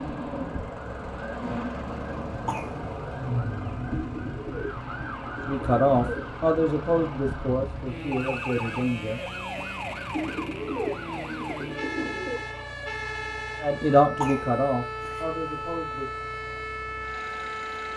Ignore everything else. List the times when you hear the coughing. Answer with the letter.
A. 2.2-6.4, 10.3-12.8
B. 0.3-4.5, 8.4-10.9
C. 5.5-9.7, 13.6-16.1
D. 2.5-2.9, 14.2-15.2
D.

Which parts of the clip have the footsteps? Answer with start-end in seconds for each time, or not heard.
not heard.